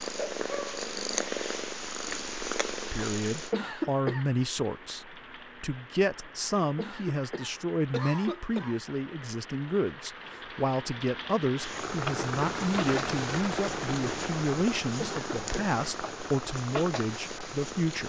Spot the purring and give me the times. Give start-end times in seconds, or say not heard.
0.0-3.5, 11.6-18.0.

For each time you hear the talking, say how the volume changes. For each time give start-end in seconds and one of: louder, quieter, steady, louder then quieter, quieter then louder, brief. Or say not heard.
2.9-18.0 steady.